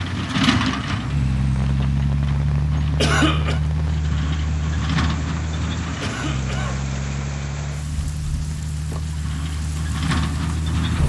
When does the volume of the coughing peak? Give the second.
3 s.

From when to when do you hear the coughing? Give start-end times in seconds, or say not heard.
3.0-3.6, 6.0-6.8.